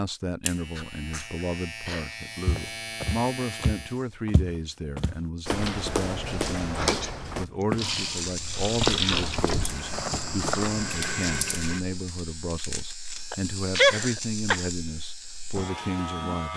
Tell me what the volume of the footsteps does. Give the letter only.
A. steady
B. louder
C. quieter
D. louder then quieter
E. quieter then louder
D.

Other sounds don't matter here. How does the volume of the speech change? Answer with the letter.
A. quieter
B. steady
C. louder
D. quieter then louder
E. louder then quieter
B.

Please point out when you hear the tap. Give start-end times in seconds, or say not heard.
7.5-11.8.